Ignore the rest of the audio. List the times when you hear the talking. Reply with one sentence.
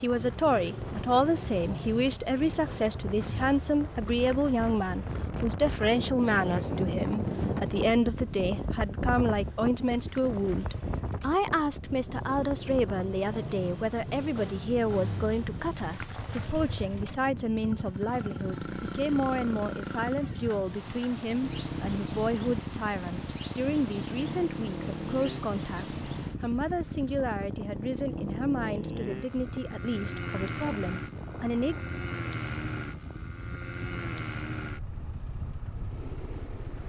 The talking can be heard from 0.0 to 31.8 s.